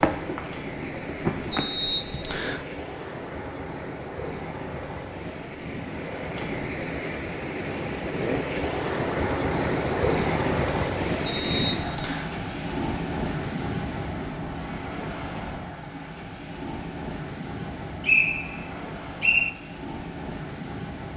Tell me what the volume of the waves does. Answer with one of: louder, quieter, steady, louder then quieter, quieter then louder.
louder then quieter.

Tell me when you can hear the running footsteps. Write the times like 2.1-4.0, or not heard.
0.0-1.7.